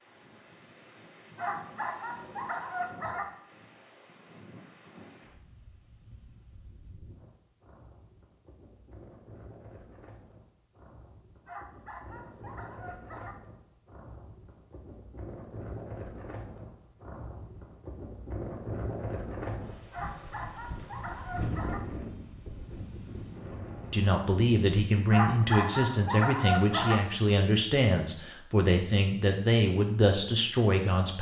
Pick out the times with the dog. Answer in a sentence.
You can hear the dog from 1.4 to 3.2 s, from 11.4 to 13.3 s, from 19.9 to 21.8 s and from 25.1 to 26.9 s.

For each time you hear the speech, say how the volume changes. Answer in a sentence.
You can hear the speech from 23.9 to 31.1 s, at a steady volume.